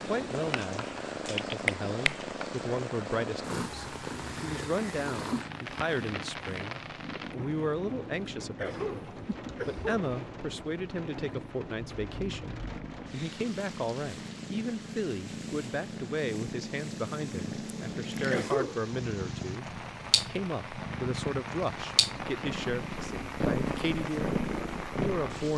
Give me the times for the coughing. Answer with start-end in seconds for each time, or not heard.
8.6-10.1, 18.2-18.9.